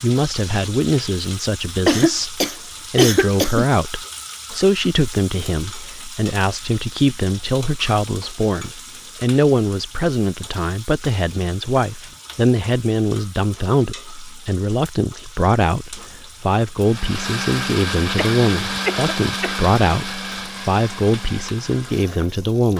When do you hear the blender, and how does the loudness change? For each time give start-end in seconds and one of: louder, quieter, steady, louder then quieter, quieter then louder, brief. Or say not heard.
16.8-22.7 quieter.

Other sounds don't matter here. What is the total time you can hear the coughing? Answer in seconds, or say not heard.
3 s.